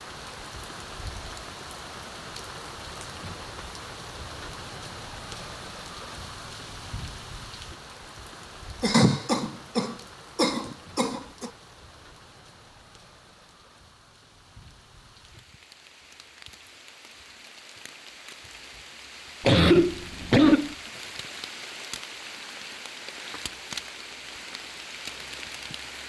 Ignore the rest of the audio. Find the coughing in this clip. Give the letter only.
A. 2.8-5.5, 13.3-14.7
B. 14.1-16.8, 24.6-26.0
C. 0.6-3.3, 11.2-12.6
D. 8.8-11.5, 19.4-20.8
D.